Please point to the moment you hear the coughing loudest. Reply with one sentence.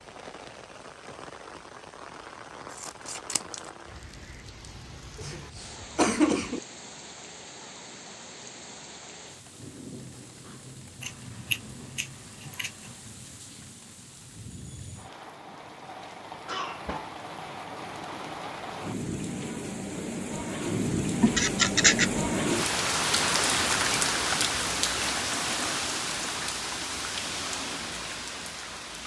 The loudest moment of the coughing is at 6 seconds.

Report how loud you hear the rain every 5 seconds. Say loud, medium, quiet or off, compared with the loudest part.
quiet, quiet, quiet, medium, loud, medium.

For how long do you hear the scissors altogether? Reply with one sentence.
You can hear the scissors for 4 seconds altogether.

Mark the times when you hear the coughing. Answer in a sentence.
The coughing can be heard from 5.2 to 6.6 s and from 16.4 to 17.1 s.